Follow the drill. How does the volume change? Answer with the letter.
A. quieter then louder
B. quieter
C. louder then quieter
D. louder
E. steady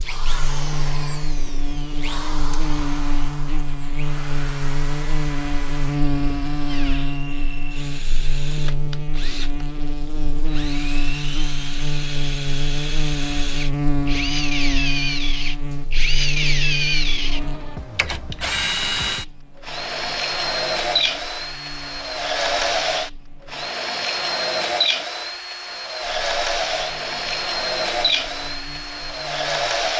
D.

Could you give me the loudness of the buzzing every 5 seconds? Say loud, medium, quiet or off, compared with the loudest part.
loud, loud, loud, medium, quiet, quiet.